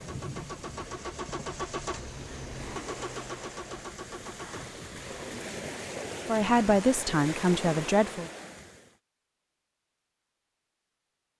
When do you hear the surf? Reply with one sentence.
The surf can be heard from 0.0 to 8.9 s.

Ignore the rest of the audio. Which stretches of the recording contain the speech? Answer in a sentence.
You can hear the speech from 6.2 to 8.3 s.